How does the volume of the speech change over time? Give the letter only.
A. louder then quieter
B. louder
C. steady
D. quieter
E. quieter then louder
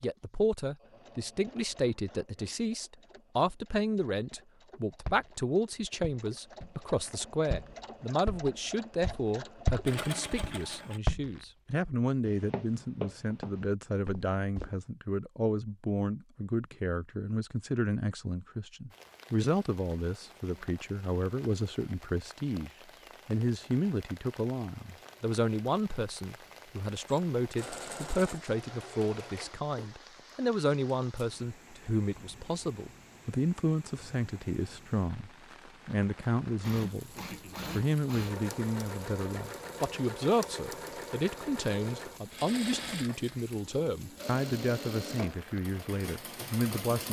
C.